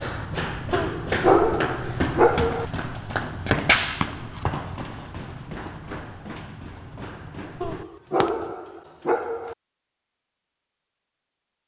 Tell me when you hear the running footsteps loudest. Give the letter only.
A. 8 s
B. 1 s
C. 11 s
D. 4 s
D.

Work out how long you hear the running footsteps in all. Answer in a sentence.
You can hear the running footsteps for 8 seconds altogether.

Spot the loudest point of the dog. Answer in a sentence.
The volume of the dog peaks at 1 second.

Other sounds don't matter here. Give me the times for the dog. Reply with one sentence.
The dog can be heard from 0.7 to 2.6 s and from 7.6 to 9.6 s.